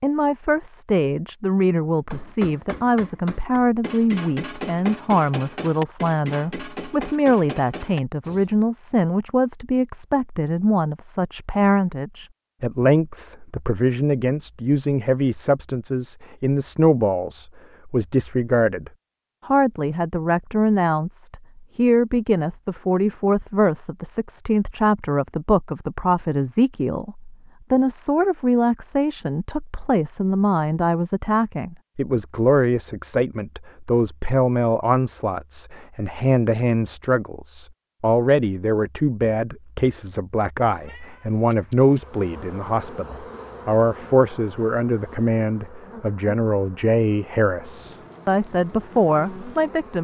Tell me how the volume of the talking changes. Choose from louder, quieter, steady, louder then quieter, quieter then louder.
steady.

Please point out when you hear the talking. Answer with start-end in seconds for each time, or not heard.
0.0-49.9.